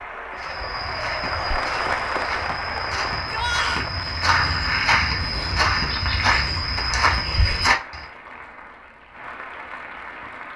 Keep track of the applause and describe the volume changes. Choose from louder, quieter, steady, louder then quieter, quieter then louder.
quieter.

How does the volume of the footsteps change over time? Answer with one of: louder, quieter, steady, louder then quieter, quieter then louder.
louder.